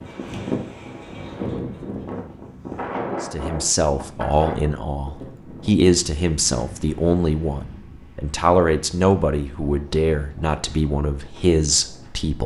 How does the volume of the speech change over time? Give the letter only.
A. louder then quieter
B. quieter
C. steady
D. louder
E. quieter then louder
C.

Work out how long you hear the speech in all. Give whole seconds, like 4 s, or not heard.
9 s.